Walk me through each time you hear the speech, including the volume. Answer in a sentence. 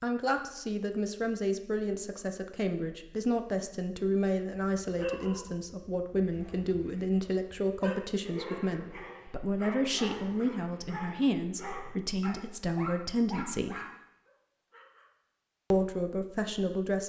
The speech can be heard from 0.0 to 13.8 s, at a steady volume; and briefly from 15.7 to 17.0 s.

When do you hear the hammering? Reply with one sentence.
The hammering can't be heard in this clip.